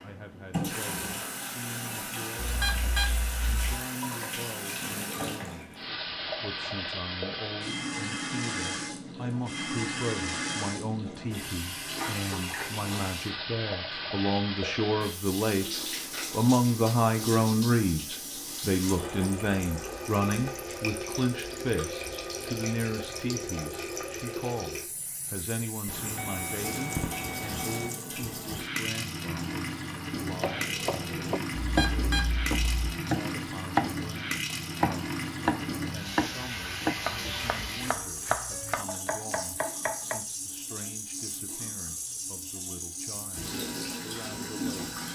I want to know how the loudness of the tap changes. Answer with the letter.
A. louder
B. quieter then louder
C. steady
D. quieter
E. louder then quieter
C.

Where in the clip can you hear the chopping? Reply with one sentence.
The chopping can be heard from 30.2 to 40.2 s.